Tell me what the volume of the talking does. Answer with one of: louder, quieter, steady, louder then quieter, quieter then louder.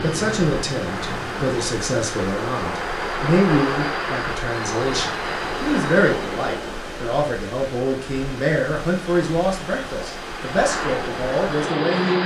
steady.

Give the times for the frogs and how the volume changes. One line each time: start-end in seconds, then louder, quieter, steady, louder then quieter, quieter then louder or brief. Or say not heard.
not heard.